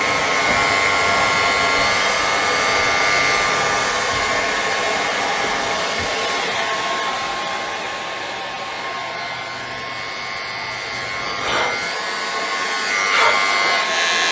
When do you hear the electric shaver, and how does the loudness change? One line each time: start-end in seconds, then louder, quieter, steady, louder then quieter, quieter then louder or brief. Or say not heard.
0.0-14.2 quieter then louder.